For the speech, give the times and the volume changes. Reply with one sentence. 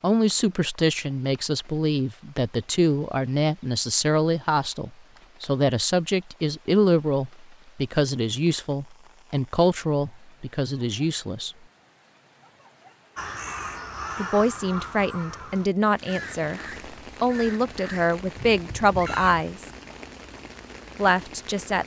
You can hear the speech from 0.0 to 11.6 s, at a steady volume; briefly from 14.2 to 16.6 s; briefly from 17.2 to 19.7 s; and briefly from 20.9 to 21.8 s.